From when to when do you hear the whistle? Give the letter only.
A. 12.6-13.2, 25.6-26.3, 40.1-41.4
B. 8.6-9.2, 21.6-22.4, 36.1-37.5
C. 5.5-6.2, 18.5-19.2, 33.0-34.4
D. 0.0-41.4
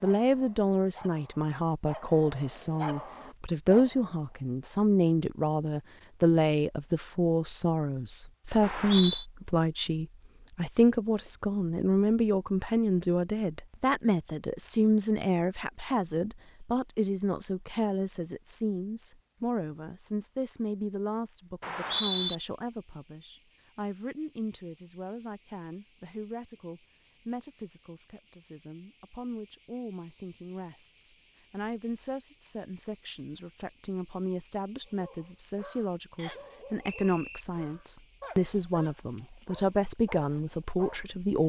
B.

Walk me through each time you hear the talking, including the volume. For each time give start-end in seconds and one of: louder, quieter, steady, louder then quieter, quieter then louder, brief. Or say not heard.
0.0-41.4 quieter then louder.